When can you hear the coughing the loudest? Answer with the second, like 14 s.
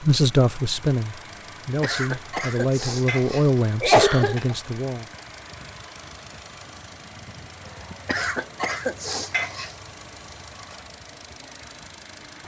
4 s.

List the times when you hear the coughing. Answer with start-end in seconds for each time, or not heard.
1.8-4.5, 8.1-9.7.